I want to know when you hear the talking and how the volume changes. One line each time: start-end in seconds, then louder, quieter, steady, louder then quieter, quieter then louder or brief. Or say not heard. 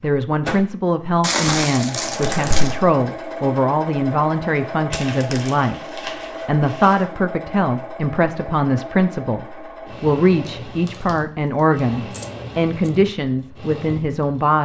0.0-14.5 steady.